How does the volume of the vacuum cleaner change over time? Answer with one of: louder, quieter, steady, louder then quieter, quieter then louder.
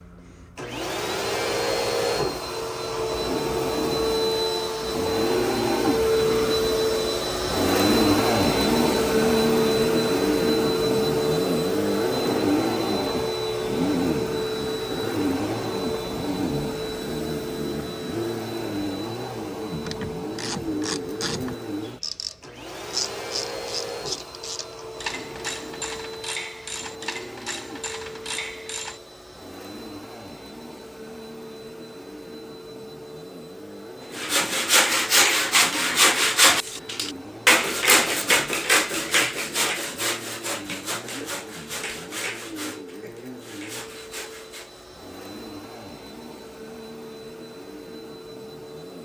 quieter.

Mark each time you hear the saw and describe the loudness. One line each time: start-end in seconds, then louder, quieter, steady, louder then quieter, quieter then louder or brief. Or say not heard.
34.1-44.9 quieter.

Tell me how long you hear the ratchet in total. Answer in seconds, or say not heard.
9 s.